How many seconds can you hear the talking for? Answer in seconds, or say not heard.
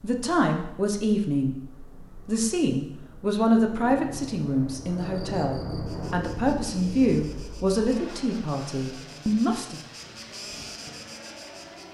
10 s.